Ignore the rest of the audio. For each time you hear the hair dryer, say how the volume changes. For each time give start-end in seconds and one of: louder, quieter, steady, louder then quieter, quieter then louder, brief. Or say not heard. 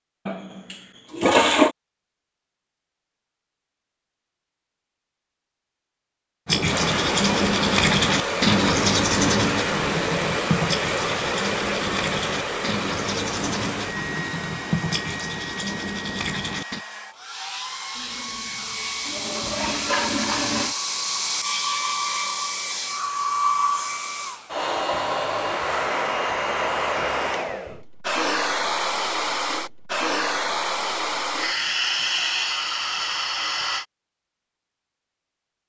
6.7-33.9 quieter then louder.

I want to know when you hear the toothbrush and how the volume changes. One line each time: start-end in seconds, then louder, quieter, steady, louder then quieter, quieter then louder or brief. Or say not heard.
6.5-16.8 quieter.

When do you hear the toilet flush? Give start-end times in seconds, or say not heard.
0.2-1.7, 17.9-20.8.